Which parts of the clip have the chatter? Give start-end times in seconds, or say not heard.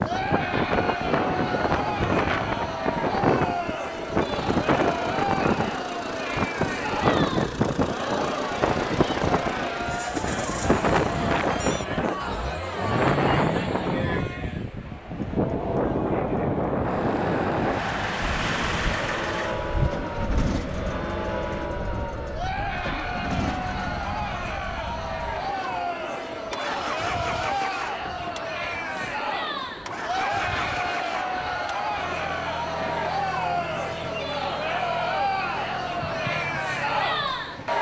0.0-37.7.